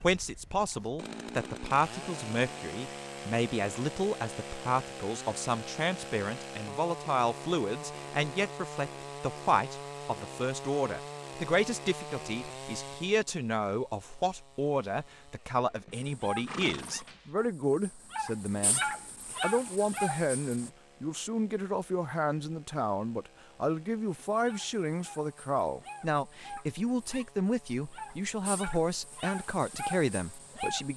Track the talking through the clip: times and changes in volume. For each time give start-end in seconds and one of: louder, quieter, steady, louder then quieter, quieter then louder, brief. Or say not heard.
0.0-30.9 steady.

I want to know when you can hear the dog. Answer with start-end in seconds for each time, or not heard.
15.9-20.7, 24.3-30.9.